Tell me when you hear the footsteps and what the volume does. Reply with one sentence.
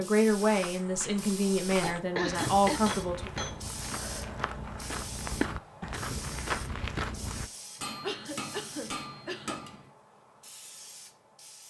The footsteps can be heard from 0.3 to 7.5 s, getting louder.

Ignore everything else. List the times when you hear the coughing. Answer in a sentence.
You can hear the coughing from 2.1 to 2.9 s and from 8.0 to 9.6 s.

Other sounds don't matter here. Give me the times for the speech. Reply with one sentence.
The speech can be heard from 0.0 to 3.3 s.